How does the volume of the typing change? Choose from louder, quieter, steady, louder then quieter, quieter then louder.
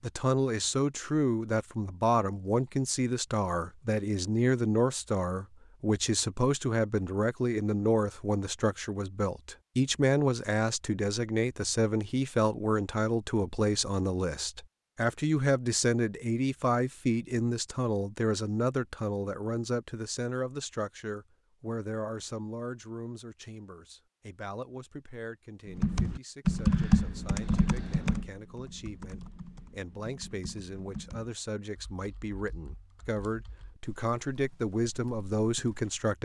quieter then louder.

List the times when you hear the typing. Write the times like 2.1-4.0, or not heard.
25.6-36.1.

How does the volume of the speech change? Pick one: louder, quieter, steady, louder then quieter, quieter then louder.
quieter then louder.